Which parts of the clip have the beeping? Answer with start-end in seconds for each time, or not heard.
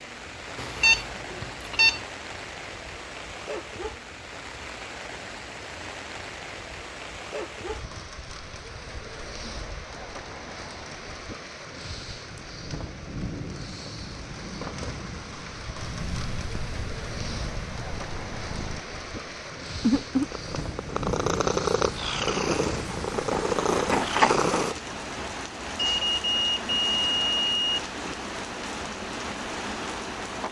0.6-2.0, 25.8-27.8.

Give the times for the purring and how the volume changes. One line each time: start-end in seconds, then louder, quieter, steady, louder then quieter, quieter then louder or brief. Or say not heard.
15.8-24.8 louder.